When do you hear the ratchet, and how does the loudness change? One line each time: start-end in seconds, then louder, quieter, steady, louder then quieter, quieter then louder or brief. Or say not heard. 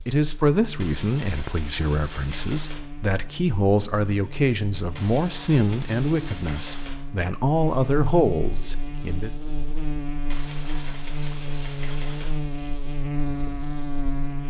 not heard.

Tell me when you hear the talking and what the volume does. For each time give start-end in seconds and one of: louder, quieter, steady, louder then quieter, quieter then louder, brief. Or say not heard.
0.1-9.3 steady.